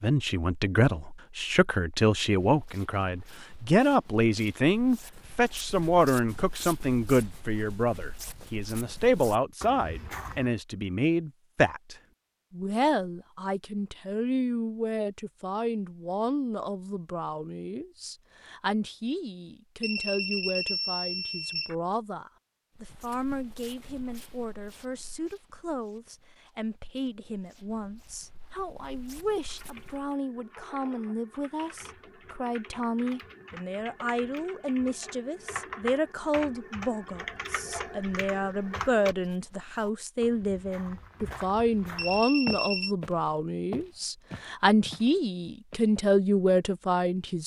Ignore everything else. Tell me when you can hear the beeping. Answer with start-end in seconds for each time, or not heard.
19.8-21.8, 42.0-43.0.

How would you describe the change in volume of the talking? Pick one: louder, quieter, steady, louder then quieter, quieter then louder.
quieter then louder.